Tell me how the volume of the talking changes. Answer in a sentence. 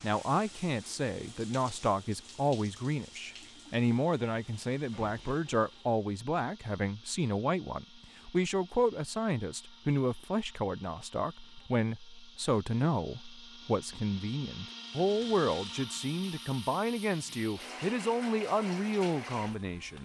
The volume of the talking stays about the same.